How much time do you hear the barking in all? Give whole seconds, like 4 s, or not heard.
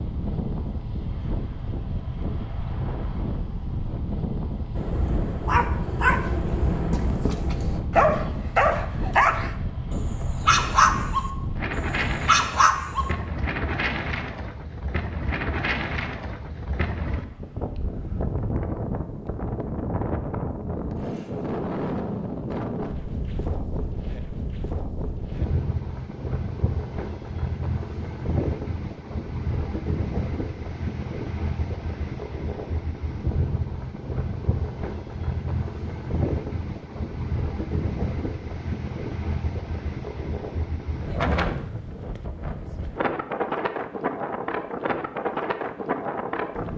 8 s.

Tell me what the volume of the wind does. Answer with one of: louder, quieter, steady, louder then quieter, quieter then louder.
steady.